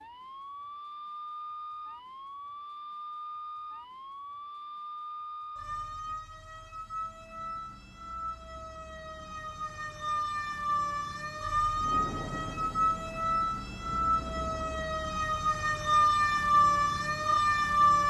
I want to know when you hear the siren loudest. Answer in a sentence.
The volume of the siren peaks at 16 seconds.